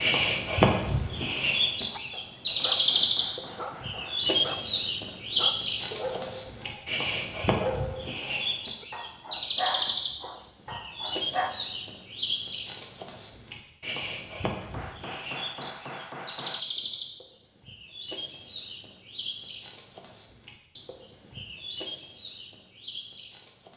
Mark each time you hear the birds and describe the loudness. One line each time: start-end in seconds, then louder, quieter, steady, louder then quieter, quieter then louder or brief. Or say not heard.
0.0-23.7 quieter.